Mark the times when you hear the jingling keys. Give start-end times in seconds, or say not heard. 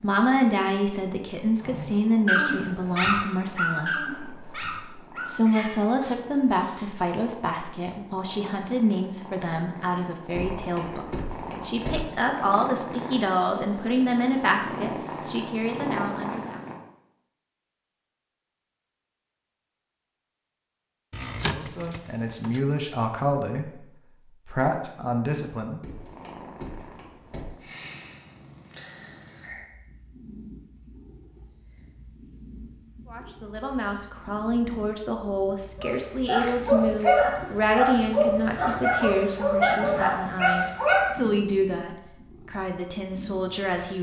21.1-22.6.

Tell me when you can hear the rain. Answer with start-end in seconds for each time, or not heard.
not heard.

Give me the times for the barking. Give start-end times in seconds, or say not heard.
1.6-6.9, 35.8-41.0.